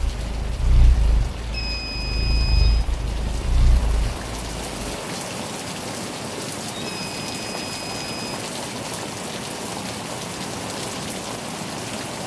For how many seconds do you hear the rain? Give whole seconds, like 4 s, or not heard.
12 s.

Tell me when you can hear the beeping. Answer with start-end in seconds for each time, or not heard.
1.5-2.9, 6.8-8.4.